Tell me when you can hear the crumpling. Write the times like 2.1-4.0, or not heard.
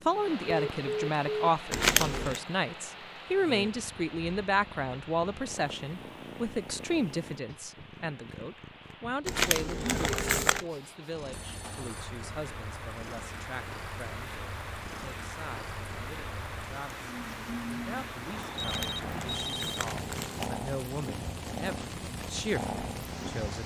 1.7-2.4, 9.2-10.7, 18.6-20.5.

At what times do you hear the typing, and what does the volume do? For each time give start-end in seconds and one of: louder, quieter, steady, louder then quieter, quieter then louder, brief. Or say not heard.
not heard.